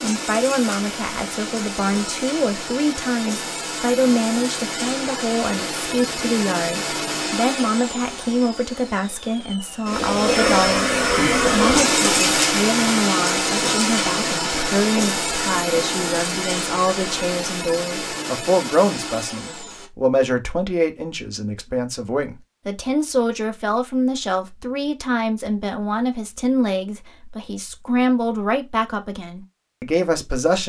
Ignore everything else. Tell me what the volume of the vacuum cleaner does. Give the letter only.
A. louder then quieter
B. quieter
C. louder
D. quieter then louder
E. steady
A.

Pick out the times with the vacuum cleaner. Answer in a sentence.
You can hear the vacuum cleaner from 0.0 to 19.9 s.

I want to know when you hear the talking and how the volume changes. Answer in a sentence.
You can hear the talking from 0.0 to 30.6 s, at a steady volume.